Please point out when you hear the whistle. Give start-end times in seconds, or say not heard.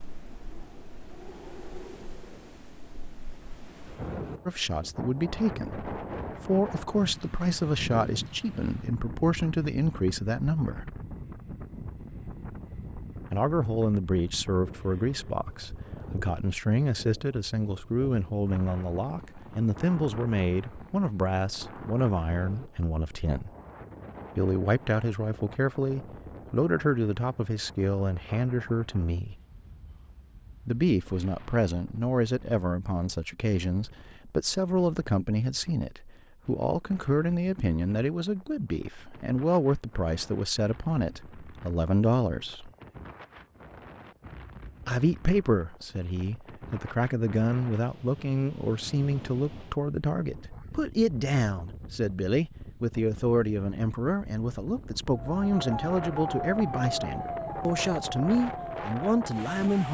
not heard.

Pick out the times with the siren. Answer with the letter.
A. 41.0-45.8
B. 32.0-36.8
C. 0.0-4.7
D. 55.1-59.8
D.